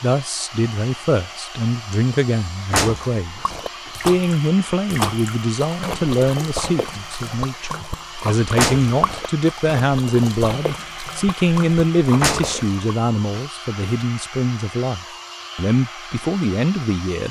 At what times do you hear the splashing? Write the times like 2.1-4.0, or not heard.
3.4-12.8.